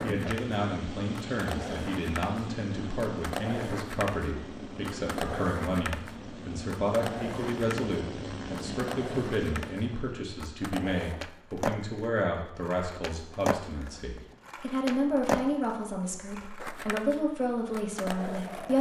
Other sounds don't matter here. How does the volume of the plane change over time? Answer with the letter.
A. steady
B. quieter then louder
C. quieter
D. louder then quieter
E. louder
A.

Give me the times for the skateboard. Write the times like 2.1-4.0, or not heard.
0.0-18.7.